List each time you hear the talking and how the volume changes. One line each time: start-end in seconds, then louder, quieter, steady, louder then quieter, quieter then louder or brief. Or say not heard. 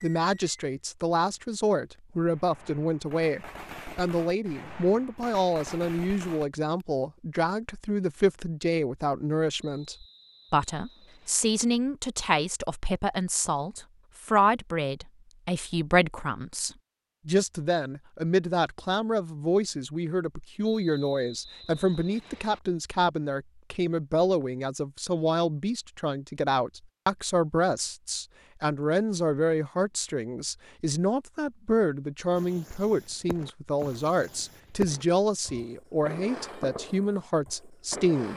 0.0-38.3 steady.